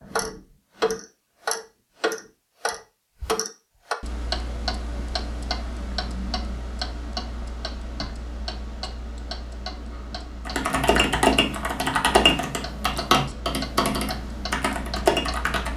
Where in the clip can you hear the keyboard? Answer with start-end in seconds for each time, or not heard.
10.4-15.7.